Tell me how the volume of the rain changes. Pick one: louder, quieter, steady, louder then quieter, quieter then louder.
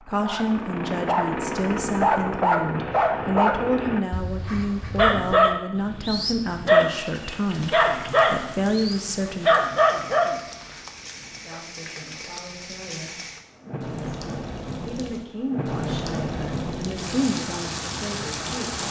louder.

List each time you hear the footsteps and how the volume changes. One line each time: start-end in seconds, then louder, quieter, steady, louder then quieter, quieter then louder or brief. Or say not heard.
not heard.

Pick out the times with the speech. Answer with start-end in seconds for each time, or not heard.
0.1-9.6, 11.3-13.2, 14.8-18.8.